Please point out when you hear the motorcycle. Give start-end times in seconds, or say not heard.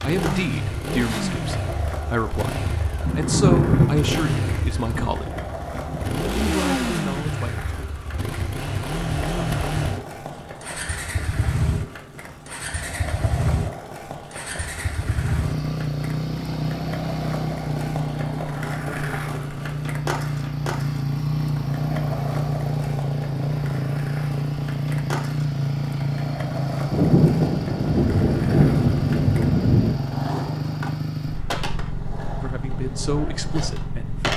0.0-34.3.